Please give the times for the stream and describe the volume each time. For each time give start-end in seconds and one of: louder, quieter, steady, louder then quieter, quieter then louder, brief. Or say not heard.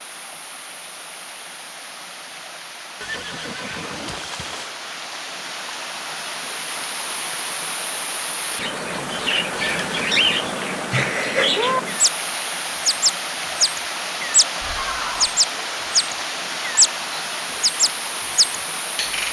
0.0-19.2 louder.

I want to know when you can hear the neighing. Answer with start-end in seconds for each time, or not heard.
3.0-4.8, 9.7-10.7, 14.6-15.4.